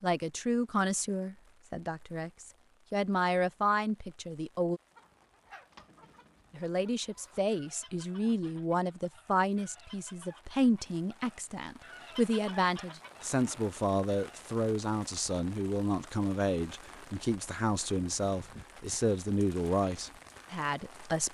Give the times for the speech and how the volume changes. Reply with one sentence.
The speech can be heard from 0.0 to 4.8 s, getting quieter then louder; and from 6.5 to 21.2 s, at a steady volume.